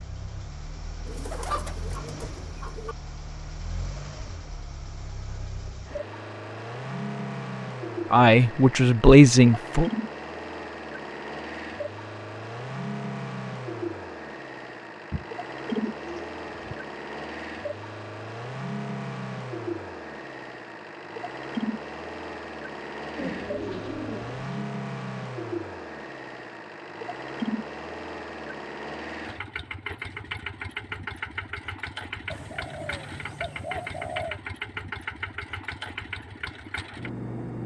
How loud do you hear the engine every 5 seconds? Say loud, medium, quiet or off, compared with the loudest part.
medium, loud, loud, loud, loud, loud, loud, loud.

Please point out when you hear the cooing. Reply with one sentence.
You can hear the cooing from 1.1 to 3.0 s, from 15.1 to 16.8 s, from 23.1 to 24.6 s and from 32.3 to 34.4 s.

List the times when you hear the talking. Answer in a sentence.
You can hear the talking from 8.1 to 9.9 s.